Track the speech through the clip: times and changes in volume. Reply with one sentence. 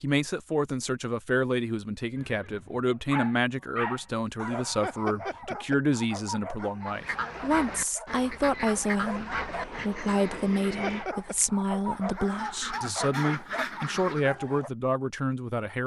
The speech can be heard from 0.0 to 15.8 s, at a steady volume.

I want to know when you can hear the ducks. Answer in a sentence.
You can hear the ducks from 6.8 to 14.3 s.